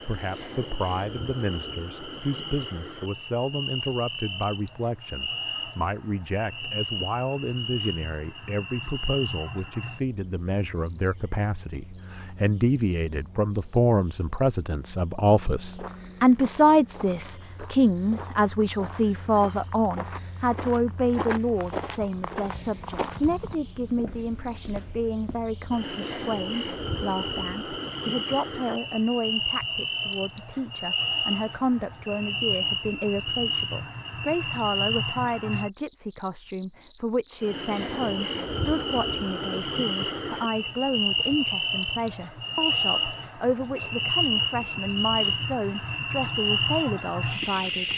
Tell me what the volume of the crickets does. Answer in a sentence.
The loudness of the crickets goes up.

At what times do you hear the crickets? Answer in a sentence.
The crickets can be heard from 0.0 to 47.9 s.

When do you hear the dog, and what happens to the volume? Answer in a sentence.
The dog can't be heard in this clip.